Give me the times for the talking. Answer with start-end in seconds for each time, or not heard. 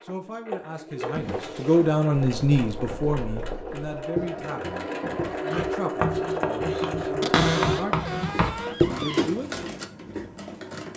0.0-9.5.